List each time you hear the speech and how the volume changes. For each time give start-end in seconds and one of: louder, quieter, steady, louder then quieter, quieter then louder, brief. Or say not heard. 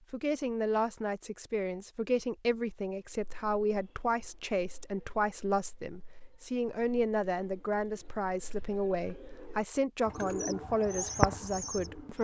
0.1-12.1 steady.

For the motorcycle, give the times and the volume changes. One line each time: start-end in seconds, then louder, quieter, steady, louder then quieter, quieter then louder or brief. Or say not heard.
not heard.